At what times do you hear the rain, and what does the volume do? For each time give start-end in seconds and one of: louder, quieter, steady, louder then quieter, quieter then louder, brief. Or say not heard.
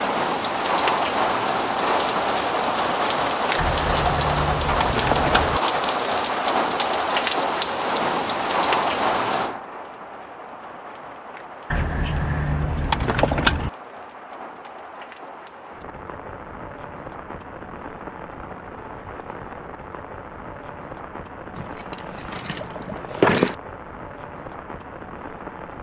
0.0-25.7 quieter.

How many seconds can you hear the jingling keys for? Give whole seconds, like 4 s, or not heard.
6 s.